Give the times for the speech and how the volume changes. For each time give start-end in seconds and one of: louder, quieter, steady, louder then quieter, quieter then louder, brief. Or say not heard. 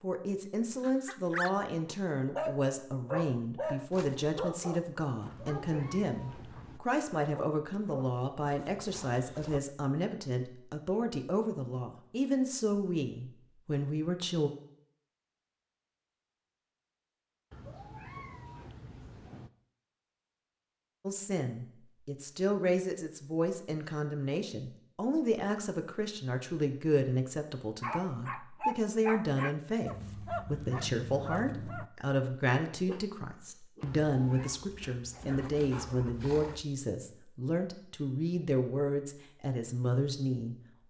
0.0-14.5 steady
21.1-40.8 steady.